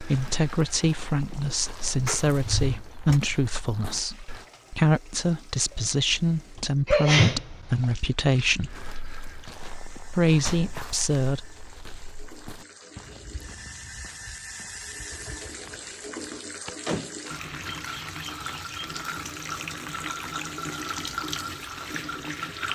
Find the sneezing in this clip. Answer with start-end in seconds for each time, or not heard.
6.8-7.8.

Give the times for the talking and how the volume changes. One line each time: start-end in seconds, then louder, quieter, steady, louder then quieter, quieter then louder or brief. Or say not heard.
0.0-8.8 steady
10.2-11.4 brief.